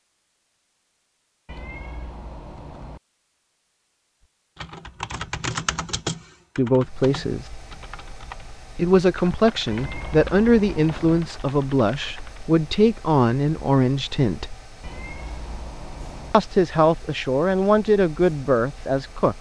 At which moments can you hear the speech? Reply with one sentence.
The speech can be heard from 6.5 to 7.5 s, from 8.8 to 14.6 s and from 16.3 to 19.3 s.